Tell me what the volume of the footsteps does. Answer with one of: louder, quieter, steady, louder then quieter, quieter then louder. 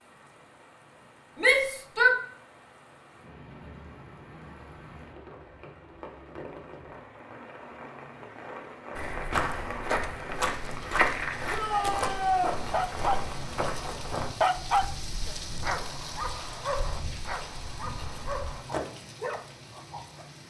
quieter.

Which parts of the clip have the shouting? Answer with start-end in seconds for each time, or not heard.
1.4-2.1, 11.5-12.6.